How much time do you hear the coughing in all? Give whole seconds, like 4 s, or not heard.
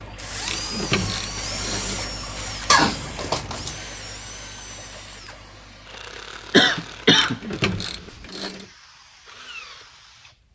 2 s.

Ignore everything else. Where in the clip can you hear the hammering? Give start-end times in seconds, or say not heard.
not heard.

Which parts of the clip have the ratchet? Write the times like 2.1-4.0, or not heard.
0.4-2.1, 7.1-8.7.